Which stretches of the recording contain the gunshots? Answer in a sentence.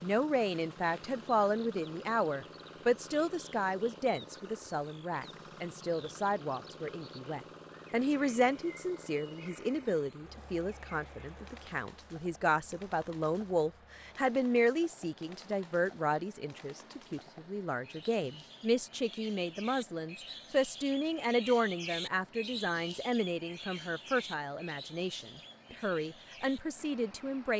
You can't hear the gunshots here.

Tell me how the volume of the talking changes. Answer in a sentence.
The loudness of the talking stays about the same.